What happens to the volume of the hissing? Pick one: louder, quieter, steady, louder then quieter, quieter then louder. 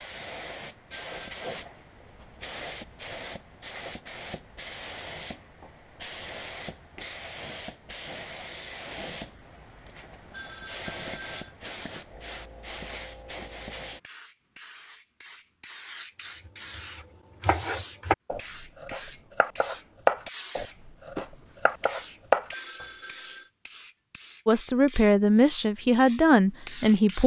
steady.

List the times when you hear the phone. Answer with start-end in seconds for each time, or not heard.
0.9-1.5, 10.3-11.6, 22.5-23.5.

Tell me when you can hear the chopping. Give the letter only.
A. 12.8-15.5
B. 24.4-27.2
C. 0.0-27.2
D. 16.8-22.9
D.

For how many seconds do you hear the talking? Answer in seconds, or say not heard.
3 s.